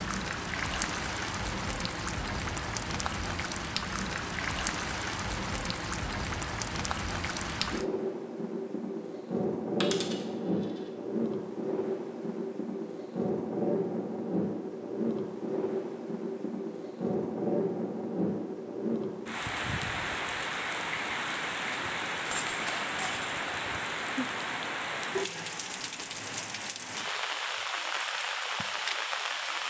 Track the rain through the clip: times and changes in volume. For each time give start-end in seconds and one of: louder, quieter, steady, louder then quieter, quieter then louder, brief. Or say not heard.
0.0-29.6 steady.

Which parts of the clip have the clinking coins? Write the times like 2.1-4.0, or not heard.
9.8-10.2, 22.2-23.4.